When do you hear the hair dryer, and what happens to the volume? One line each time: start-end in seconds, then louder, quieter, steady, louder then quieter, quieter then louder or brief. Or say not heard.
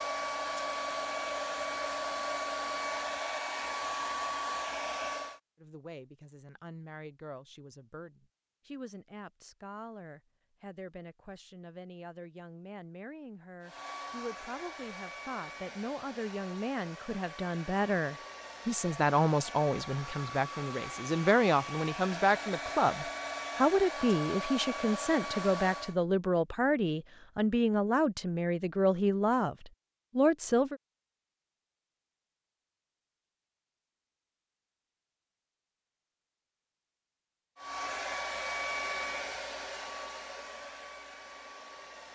0.0-5.4 steady
13.6-25.9 louder
37.5-42.0 quieter.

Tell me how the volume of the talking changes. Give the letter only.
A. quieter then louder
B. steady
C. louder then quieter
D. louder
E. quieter
D.